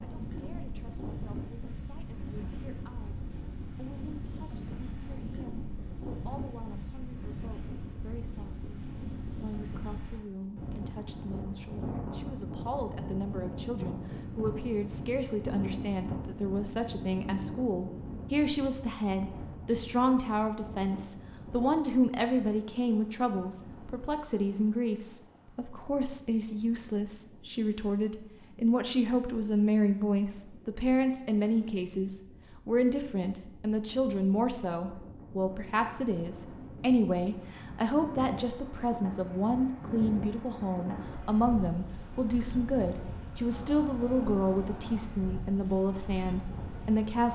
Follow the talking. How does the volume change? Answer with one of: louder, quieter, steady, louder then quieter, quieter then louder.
louder.